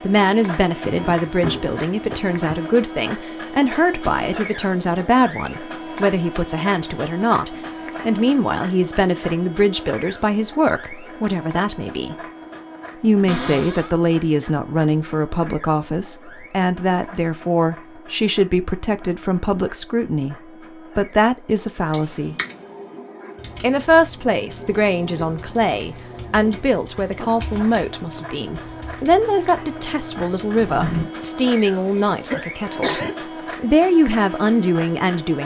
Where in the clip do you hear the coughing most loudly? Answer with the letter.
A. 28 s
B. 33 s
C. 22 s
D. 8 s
B.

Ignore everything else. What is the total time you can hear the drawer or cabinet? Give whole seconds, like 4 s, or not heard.
3 s.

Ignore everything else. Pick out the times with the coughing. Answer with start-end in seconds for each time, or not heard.
31.2-33.1.